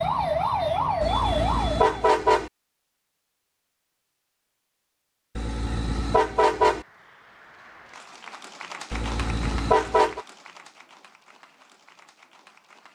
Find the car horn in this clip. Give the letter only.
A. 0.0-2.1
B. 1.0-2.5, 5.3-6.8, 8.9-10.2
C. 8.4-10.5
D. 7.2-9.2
B.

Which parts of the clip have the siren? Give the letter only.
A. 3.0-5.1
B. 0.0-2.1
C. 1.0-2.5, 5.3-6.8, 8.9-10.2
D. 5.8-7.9
B.